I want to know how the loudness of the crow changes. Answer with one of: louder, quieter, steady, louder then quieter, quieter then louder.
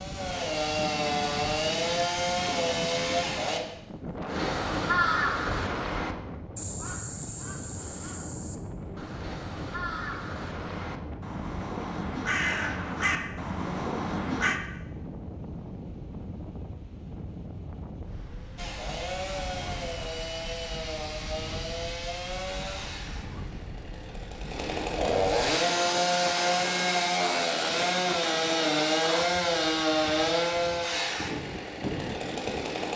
quieter then louder.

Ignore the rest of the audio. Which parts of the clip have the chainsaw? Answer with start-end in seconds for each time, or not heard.
0.0-3.6, 18.6-32.9.